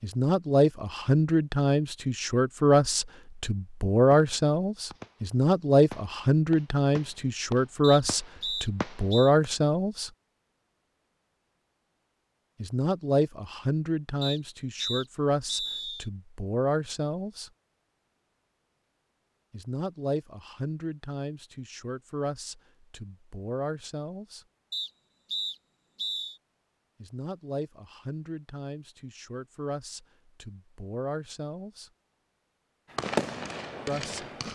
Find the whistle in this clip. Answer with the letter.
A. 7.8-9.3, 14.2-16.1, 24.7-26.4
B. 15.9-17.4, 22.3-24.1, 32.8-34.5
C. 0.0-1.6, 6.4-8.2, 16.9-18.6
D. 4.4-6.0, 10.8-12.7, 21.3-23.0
A.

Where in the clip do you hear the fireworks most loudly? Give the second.
33 s.